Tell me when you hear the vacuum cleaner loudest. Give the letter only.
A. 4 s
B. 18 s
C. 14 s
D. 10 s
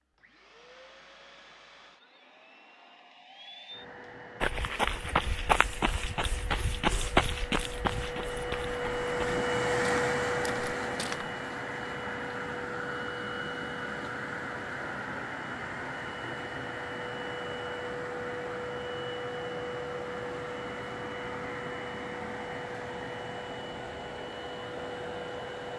D.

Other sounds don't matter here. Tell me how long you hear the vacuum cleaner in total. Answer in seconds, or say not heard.
26 s.